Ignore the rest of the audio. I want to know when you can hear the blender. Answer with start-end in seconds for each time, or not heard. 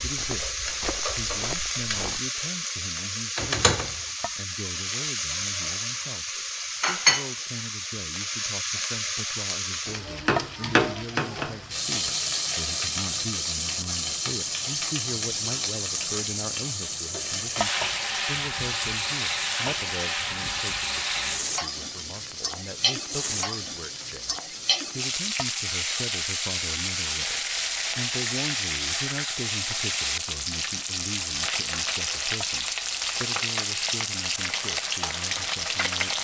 not heard.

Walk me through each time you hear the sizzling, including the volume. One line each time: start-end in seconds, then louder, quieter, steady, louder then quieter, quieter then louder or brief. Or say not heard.
0.0-36.1 steady.